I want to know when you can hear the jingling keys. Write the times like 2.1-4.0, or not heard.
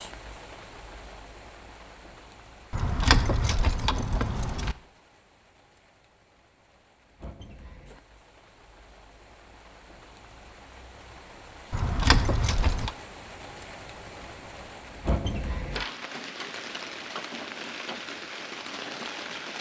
2.7-4.8, 11.7-12.9.